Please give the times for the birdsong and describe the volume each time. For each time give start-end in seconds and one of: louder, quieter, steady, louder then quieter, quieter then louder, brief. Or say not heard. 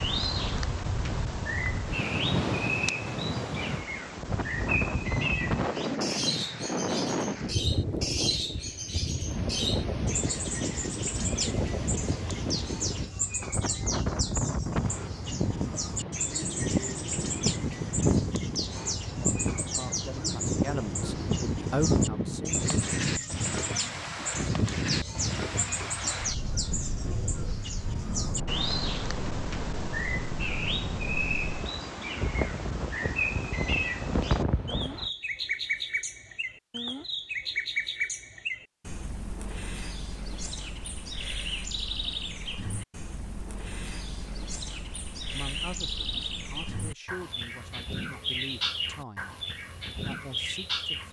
0.0-51.0 steady.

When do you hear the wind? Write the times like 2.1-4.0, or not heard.
0.0-35.1.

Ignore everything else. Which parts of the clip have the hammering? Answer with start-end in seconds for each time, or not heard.
not heard.